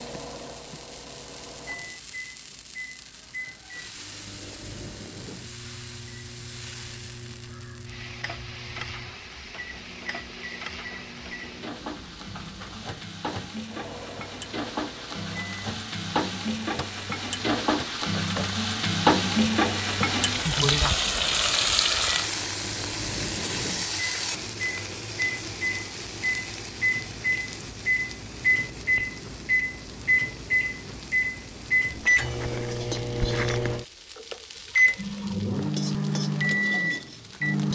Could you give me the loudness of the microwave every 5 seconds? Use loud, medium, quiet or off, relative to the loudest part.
quiet, quiet, quiet, quiet, quiet, loud, loud, loud.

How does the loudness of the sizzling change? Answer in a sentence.
The loudness of the sizzling goes up, then down.